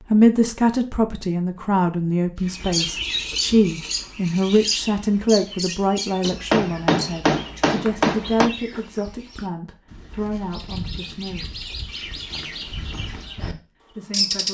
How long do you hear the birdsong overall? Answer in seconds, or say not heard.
12 s.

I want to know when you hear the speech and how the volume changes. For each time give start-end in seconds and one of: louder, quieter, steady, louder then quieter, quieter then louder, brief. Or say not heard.
0.0-11.4 quieter
13.4-14.4 brief.